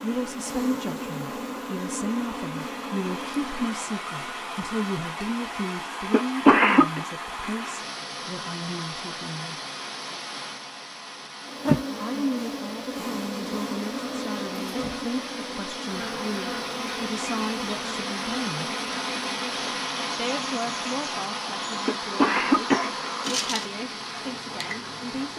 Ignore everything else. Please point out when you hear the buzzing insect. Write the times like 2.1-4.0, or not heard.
0.0-3.8, 11.4-25.3.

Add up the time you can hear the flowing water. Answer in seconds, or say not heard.
25 s.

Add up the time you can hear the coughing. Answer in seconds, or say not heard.
2 s.